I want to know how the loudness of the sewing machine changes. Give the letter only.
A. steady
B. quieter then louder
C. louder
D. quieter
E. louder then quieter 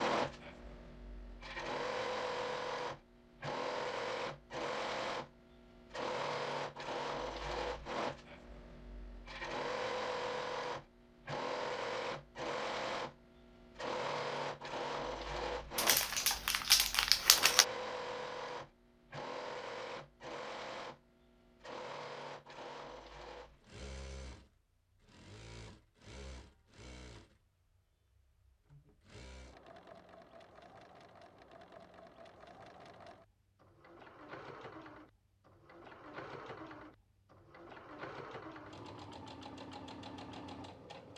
B.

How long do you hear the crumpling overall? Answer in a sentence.
You can hear the crumpling for 2 seconds altogether.